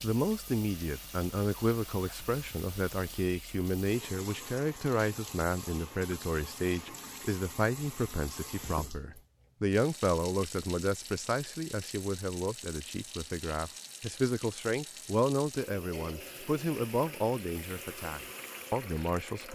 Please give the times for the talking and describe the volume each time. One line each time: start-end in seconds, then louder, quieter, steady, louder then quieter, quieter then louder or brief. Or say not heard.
0.0-19.5 steady.